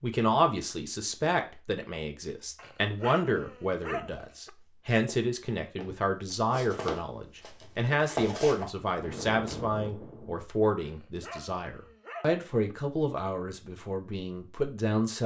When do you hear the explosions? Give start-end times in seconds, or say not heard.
8.9-10.4.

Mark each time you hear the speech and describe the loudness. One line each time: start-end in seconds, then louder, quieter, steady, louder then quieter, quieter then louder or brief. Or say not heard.
0.0-15.2 steady.